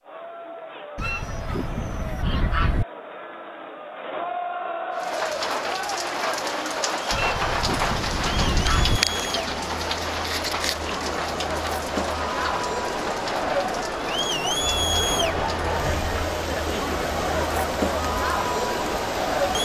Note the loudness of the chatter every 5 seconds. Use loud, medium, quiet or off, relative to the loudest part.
medium, medium, loud, loud.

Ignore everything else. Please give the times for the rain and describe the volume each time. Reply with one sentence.
The rain can be heard from 4.9 to 19.6 s, getting quieter.